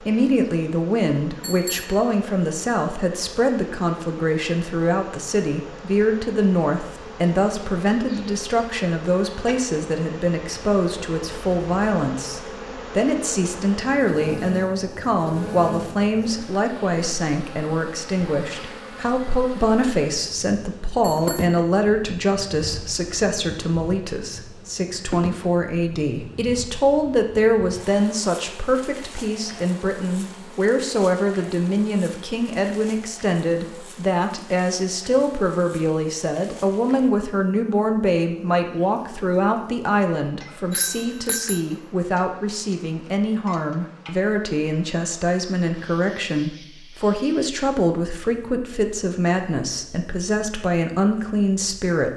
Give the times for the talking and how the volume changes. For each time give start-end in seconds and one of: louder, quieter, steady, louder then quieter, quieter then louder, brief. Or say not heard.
0.0-52.1 steady.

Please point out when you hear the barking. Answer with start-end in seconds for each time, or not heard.
not heard.